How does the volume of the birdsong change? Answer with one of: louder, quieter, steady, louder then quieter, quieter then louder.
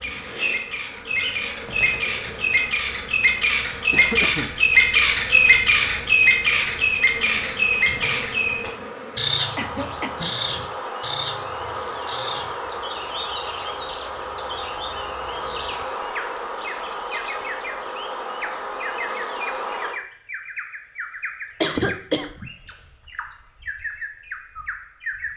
quieter.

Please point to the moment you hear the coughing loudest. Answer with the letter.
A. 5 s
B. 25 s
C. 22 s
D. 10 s
C.